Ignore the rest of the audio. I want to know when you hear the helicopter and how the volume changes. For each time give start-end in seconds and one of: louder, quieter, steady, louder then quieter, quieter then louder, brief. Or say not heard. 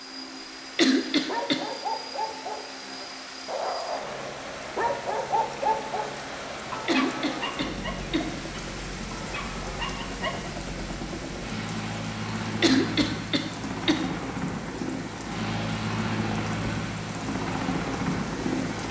0.0-18.8 louder.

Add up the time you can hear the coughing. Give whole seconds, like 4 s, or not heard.
4 s.